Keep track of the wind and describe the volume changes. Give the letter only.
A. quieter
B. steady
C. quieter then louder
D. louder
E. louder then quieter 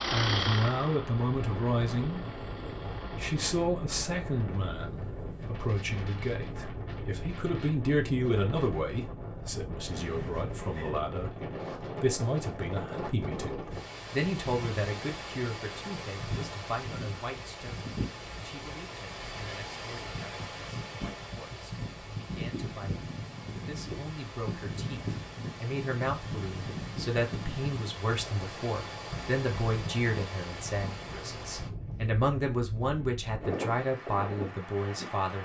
B.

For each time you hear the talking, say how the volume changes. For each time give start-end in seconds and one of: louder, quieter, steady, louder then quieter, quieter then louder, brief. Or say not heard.
0.1-2.2 brief
3.0-35.4 quieter then louder.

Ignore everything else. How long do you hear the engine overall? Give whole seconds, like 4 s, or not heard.
4 s.